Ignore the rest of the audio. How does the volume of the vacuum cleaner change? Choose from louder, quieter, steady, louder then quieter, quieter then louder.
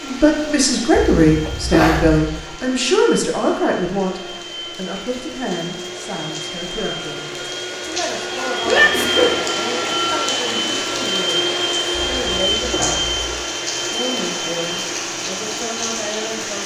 louder then quieter.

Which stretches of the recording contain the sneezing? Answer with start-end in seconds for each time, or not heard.
0.9-2.2, 8.7-9.3, 11.9-13.2.